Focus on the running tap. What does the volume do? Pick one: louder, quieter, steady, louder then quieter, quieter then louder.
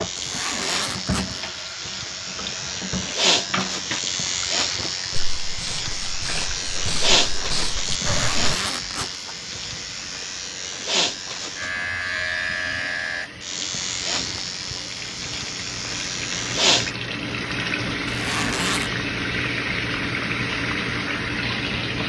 quieter then louder.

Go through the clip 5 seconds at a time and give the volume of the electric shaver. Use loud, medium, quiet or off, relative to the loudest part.
loud, loud, loud, loud, off.